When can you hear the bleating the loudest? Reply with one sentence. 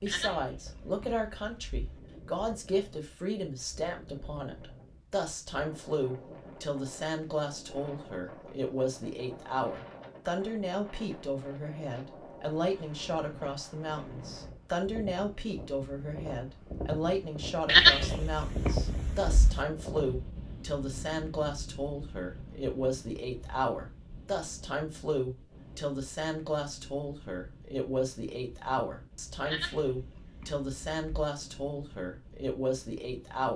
The volume of the bleating peaks at 18 seconds.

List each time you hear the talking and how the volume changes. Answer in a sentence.
The talking can be heard from 0.0 to 33.5 s, at a steady volume.